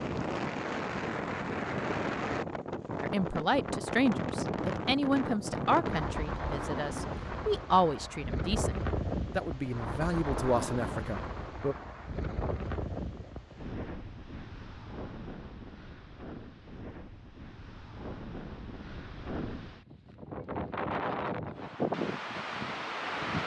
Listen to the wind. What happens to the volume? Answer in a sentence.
The loudness of the wind goes down, then up.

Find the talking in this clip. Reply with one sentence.
The talking can be heard from 3.0 to 11.8 s.